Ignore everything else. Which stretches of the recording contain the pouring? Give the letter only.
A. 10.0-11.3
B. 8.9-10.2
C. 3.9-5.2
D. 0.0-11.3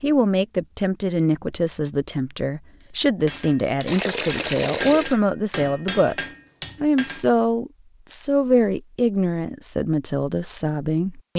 C.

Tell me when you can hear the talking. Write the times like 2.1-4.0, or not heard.
0.0-11.3.